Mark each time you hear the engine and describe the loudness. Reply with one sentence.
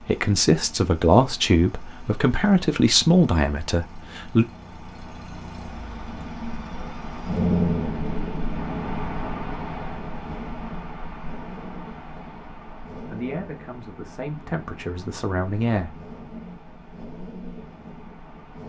You can hear the engine from 0.0 to 18.6 s, getting louder then quieter.